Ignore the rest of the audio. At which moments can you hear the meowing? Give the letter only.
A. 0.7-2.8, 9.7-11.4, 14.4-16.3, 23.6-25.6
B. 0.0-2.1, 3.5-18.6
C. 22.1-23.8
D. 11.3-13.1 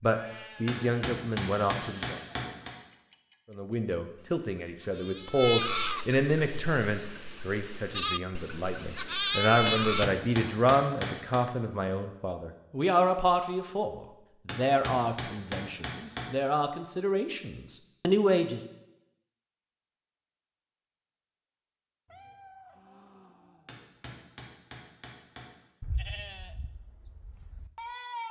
C.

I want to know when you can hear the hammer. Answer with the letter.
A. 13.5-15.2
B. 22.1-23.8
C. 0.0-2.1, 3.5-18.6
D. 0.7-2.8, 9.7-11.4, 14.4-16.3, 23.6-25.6
D.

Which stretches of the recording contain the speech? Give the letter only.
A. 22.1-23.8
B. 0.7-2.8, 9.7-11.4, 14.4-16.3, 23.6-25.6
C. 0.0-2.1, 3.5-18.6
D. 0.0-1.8
C.